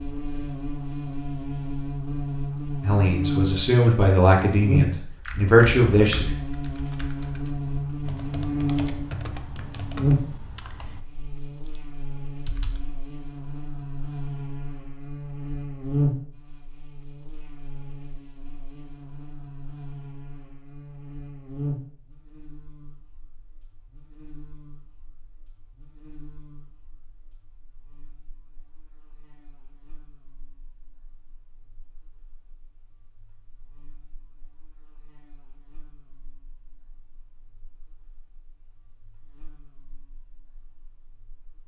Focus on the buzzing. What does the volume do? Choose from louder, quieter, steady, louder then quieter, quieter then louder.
quieter.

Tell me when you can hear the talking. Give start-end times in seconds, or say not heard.
2.8-6.3.